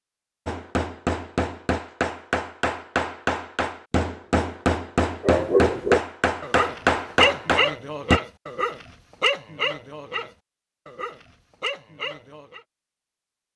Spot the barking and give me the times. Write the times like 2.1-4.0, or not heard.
5.2-12.6.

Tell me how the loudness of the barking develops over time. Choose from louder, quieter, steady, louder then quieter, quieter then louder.
quieter.